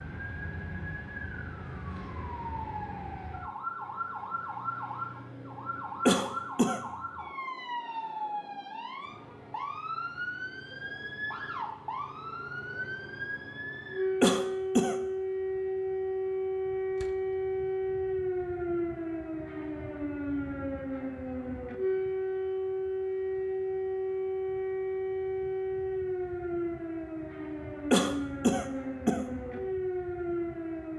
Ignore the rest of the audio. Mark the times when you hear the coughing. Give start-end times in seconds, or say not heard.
6.0-6.8, 14.2-14.9, 27.9-29.2.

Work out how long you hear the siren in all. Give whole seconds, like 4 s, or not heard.
31 s.